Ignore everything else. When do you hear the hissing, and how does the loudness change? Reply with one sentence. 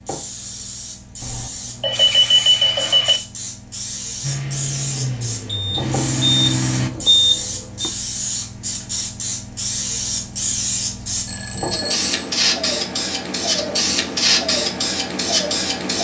You can hear the hissing from 0.0 to 15.9 s, getting louder.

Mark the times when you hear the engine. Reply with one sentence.
The engine can be heard from 4.2 to 6.9 s.